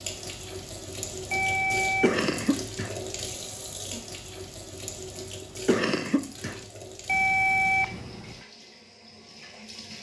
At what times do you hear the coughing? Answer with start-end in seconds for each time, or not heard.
2.0-3.0, 5.4-6.6.